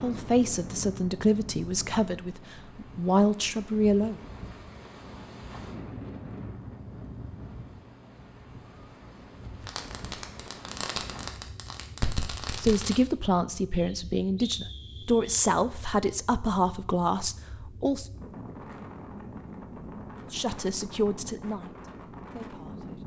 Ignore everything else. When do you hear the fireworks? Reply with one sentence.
The fireworks can be heard from 9.6 to 13.0 s.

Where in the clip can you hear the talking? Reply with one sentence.
You can hear the talking from 0.0 to 4.2 s, from 12.6 to 18.1 s and from 20.3 to 23.0 s.